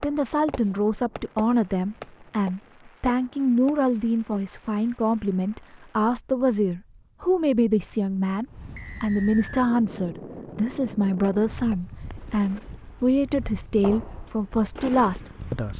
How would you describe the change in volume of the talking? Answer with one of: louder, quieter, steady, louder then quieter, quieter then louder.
steady.